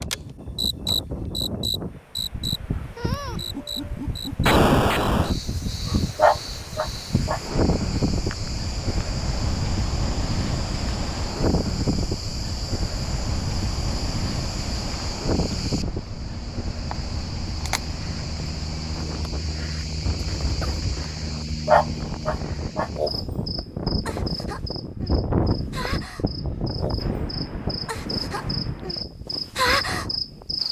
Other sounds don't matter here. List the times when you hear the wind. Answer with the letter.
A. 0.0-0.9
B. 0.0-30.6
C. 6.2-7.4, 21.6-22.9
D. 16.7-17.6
B.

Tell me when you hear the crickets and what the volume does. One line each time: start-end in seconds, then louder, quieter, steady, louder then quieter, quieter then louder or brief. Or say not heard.
0.0-30.6 quieter then louder.